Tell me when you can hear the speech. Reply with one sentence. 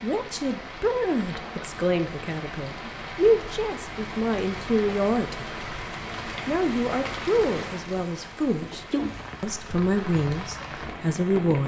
You can hear the speech from 0.0 to 5.5 s, from 6.5 to 8.8 s and from 9.4 to 11.6 s.